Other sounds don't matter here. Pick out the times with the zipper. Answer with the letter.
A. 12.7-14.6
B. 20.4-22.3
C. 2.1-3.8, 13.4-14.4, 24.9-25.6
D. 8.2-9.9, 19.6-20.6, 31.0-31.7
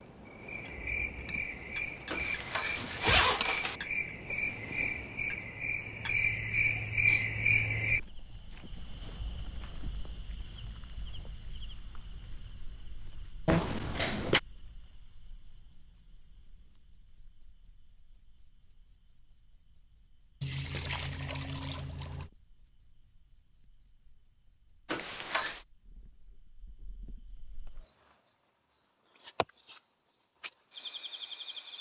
C.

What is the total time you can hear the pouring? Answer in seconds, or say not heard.
2 s.